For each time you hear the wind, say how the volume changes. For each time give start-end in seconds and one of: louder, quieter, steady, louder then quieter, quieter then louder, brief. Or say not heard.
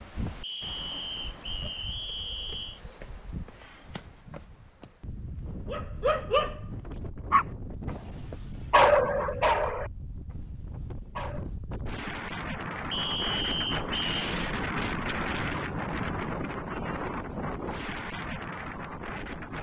0.0-19.5 louder.